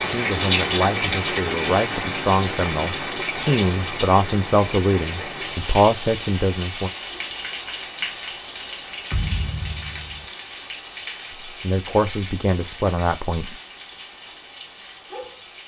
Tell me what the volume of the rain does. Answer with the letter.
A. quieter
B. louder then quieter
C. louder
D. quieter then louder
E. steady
A.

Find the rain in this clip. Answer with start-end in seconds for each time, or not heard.
0.0-15.6.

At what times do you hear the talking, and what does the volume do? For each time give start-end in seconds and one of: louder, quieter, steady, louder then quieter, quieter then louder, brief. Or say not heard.
0.0-6.9 louder
11.4-13.6 brief.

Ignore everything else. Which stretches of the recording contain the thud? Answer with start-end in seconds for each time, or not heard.
9.1-10.2.